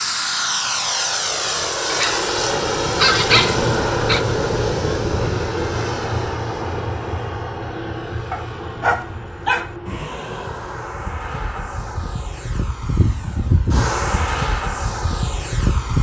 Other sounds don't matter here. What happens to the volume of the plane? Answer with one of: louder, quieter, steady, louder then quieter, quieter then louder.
quieter then louder.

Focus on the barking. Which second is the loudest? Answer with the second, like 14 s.
3 s.